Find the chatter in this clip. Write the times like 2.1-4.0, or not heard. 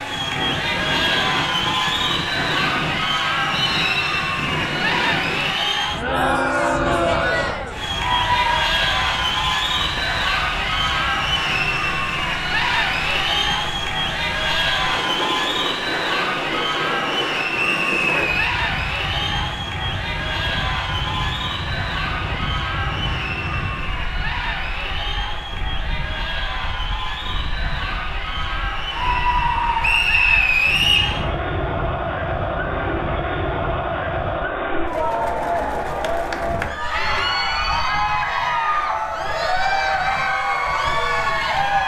0.0-41.8.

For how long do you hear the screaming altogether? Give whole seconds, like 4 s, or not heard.
2 s.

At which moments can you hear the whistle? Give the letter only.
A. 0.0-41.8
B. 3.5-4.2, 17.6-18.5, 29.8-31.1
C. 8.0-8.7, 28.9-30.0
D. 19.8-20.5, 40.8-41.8
B.